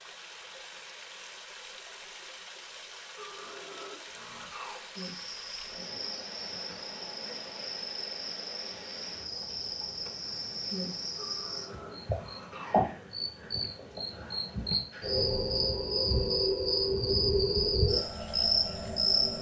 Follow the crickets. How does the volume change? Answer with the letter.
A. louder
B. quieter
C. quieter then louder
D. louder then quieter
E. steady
A.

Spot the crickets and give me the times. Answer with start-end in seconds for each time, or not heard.
5.0-19.3.